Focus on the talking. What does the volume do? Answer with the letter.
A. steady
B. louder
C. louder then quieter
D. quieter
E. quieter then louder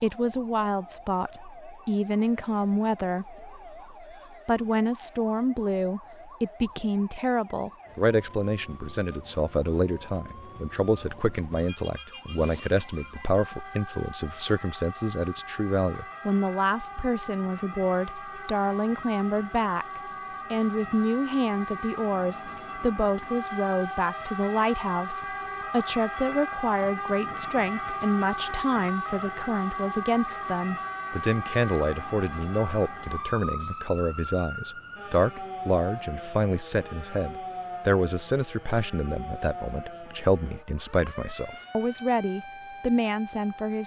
A.